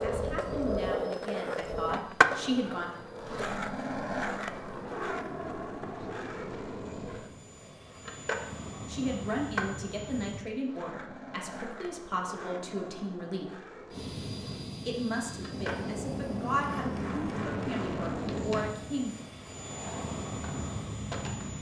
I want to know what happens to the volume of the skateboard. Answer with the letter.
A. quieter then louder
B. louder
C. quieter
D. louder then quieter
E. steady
C.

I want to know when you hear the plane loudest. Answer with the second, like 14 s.
18 s.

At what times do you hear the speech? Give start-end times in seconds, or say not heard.
0.0-2.9, 8.8-13.6, 14.8-19.1.